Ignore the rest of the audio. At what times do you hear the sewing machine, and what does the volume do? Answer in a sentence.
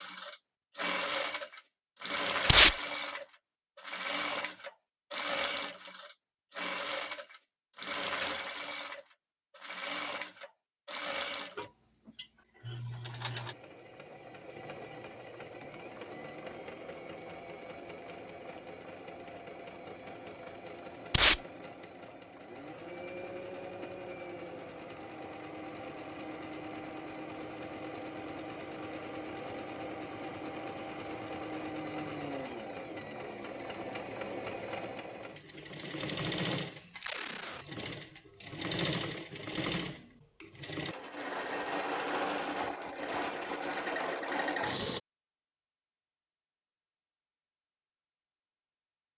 You can hear the sewing machine from 0.0 to 45.0 s, getting quieter then louder.